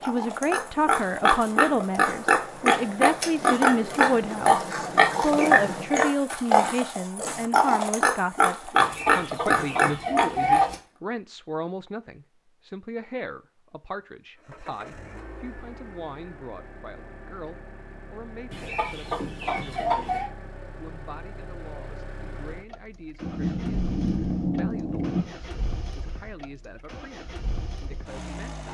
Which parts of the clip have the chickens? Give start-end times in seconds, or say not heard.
8.8-10.8, 18.5-20.3.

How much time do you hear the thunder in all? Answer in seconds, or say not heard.
2 s.